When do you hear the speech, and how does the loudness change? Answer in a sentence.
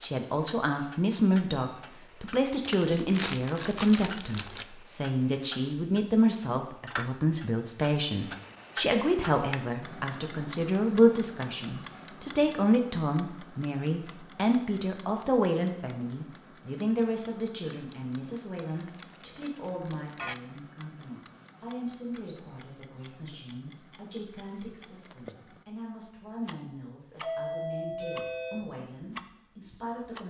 The speech can be heard from 0.0 to 30.2 s, getting quieter.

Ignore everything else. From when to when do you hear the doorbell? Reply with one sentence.
The doorbell can be heard from 27.2 to 28.6 s.